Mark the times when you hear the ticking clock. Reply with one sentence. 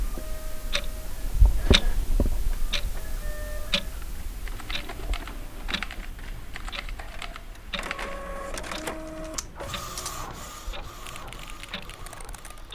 You can hear the ticking clock from 0.0 to 12.7 s.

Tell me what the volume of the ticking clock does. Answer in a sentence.
The volume of the ticking clock goes down.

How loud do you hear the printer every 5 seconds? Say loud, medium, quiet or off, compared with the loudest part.
medium, loud, loud.